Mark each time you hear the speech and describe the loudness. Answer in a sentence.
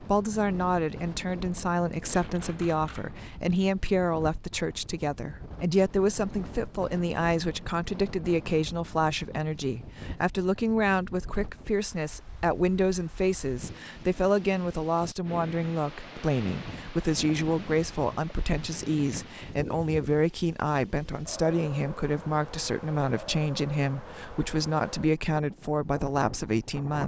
You can hear the speech from 0.0 to 27.0 s, at a steady volume.